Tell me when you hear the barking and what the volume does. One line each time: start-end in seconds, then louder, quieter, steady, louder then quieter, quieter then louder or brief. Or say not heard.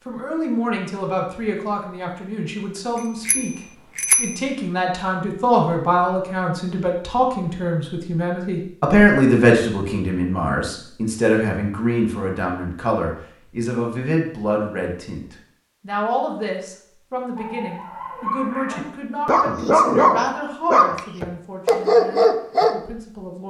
17.4-22.8 louder.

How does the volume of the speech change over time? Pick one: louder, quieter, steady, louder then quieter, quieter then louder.
louder then quieter.